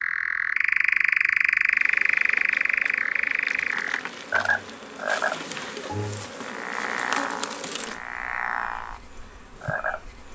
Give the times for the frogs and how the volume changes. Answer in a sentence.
The frogs can be heard from 0.0 to 9.0 s, getting quieter; and briefly from 9.6 to 10.3 s.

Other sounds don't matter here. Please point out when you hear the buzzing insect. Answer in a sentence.
You can hear the buzzing insect from 1.6 to 10.3 s.